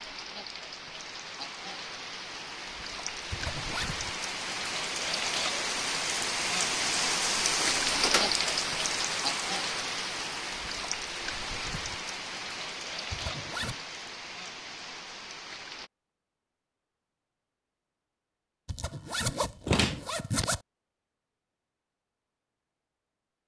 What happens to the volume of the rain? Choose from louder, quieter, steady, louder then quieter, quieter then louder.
louder then quieter.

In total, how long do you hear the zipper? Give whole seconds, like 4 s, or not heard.
3 s.